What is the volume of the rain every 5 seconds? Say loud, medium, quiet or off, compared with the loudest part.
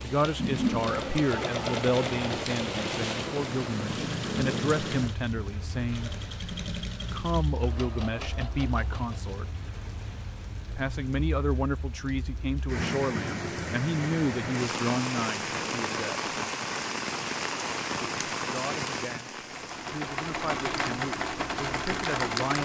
loud, medium, loud, loud, medium.